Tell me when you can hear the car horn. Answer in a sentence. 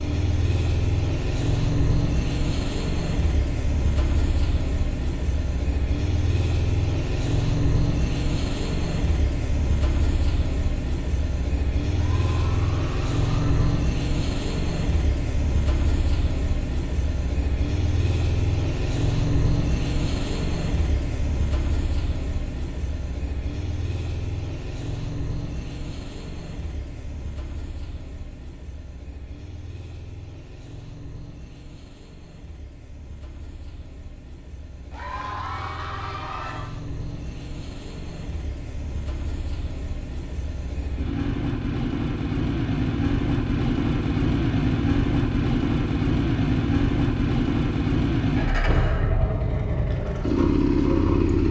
You can't hear the car horn here.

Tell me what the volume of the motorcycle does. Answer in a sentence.
The volume of the motorcycle goes down, then up.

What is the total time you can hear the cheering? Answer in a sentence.
The cheering can be heard for 4 seconds in total.